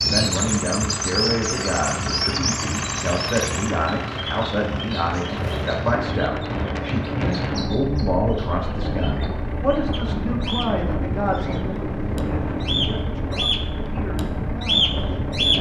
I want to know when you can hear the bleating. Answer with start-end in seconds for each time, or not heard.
not heard.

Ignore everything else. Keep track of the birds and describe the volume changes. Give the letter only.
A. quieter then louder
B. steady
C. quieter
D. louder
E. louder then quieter
A.